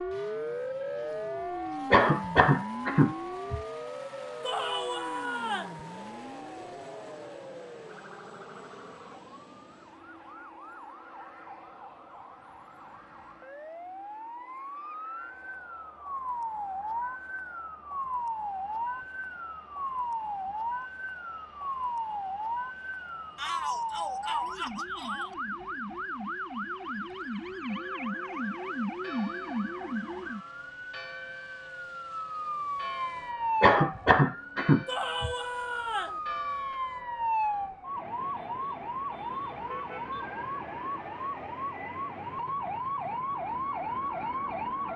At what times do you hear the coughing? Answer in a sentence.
The coughing can be heard from 1.9 to 3.6 s and from 33.6 to 35.4 s.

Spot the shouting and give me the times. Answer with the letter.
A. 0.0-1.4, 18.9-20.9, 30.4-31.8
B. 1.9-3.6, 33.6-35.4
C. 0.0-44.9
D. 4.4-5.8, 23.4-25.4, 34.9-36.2
D.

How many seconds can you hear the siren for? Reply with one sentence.
The siren can be heard for 45 seconds in total.